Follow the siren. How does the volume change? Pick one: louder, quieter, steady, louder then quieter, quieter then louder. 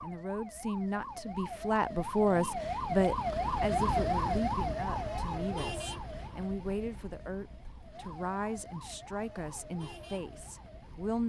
louder then quieter.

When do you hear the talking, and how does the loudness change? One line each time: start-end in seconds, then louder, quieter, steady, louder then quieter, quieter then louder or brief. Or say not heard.
0.0-11.2 quieter.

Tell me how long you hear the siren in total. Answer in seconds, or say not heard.
11 s.